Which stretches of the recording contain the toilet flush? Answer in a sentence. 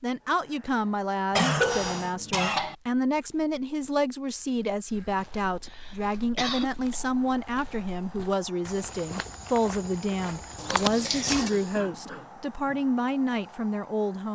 You can hear the toilet flush from 10.6 to 11.5 s.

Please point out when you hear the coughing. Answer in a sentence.
The coughing can be heard from 1.4 to 2.8 s, from 5.7 to 7.0 s and from 11.3 to 12.8 s.